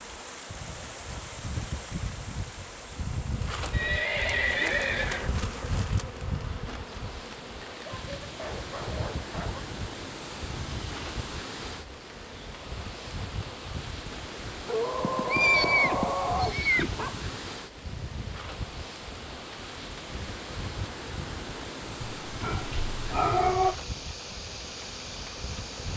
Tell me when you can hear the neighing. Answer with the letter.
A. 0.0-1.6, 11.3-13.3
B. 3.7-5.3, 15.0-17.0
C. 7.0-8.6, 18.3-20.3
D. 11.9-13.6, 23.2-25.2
B.